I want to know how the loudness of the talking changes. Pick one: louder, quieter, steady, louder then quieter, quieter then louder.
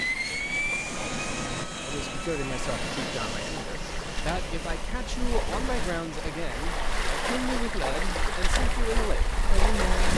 steady.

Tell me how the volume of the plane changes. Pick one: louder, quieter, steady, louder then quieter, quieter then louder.
quieter.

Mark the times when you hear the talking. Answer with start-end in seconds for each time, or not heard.
1.9-10.1.